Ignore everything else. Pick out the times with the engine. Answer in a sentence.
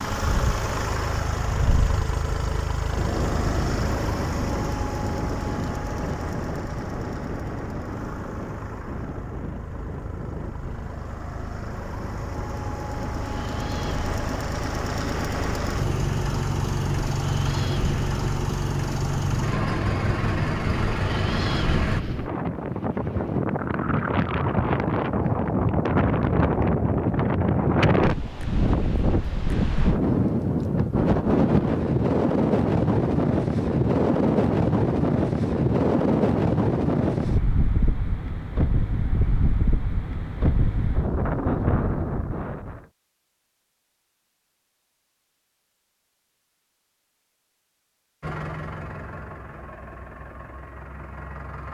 The engine can be heard from 0.0 to 22.1 s and from 48.2 to 51.6 s.